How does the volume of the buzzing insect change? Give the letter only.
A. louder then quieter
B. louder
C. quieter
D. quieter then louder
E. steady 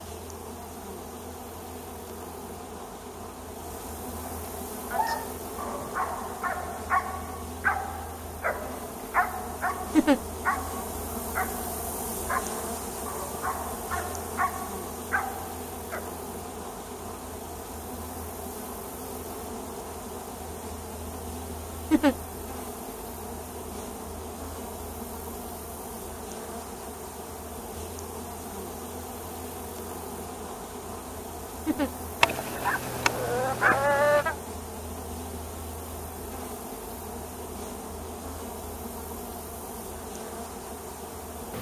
E.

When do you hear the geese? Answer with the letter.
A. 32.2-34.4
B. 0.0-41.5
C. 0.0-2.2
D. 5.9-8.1
A.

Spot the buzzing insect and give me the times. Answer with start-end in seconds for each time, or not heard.
0.0-41.5.